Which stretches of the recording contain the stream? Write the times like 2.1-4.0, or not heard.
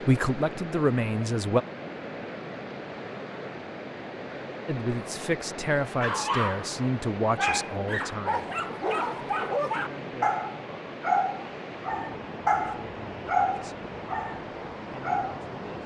0.0-15.8.